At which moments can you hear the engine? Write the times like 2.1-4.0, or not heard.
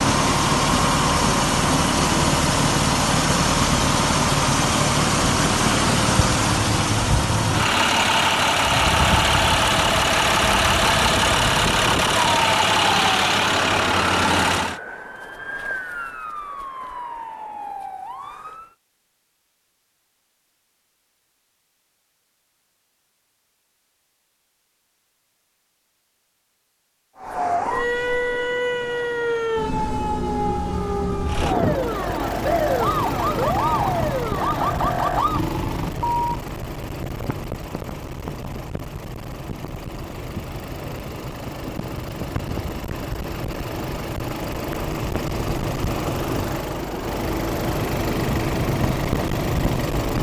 0.0-14.8, 31.2-50.1.